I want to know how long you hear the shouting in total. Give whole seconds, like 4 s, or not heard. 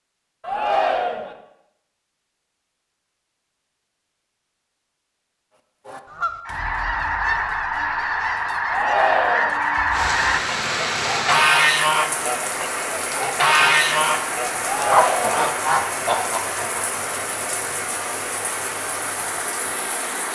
3 s.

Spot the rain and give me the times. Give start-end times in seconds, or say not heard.
9.9-20.3.